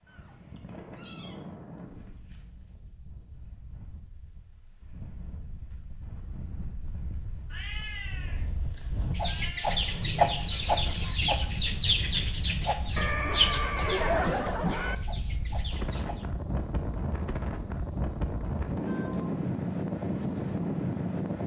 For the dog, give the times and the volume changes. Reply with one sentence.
You can't hear the dog here.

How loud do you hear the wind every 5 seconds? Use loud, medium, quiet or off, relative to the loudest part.
quiet, quiet, medium, loud, loud.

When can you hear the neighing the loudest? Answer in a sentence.
The volume of the neighing peaks at 14 seconds.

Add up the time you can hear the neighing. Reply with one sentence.
The neighing can be heard for 2 seconds in total.